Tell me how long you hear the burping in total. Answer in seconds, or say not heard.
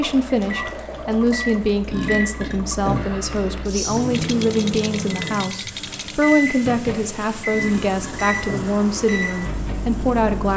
3 s.